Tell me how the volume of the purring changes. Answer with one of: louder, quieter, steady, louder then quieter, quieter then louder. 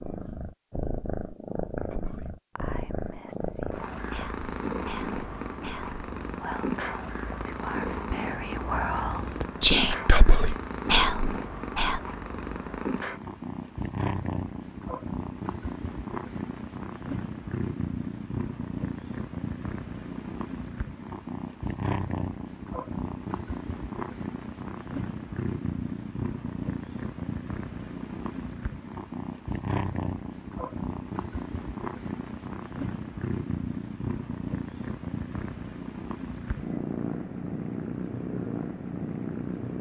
steady.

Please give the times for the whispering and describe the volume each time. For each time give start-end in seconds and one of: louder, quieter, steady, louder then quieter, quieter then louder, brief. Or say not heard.
1.9-12.0 louder.